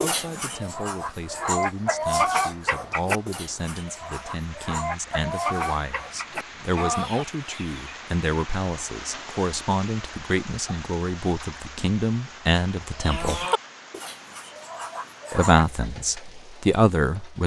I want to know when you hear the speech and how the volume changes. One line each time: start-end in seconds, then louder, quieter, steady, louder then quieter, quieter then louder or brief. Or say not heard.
0.0-13.4 louder
15.3-17.4 brief.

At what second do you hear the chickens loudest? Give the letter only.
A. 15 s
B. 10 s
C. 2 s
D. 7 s
C.